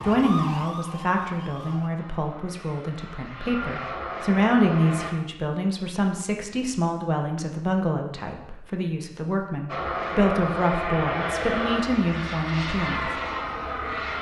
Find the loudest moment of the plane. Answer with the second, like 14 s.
11 s.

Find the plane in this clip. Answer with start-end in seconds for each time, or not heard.
1.9-5.2, 9.7-14.1.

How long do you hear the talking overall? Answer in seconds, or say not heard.
13 s.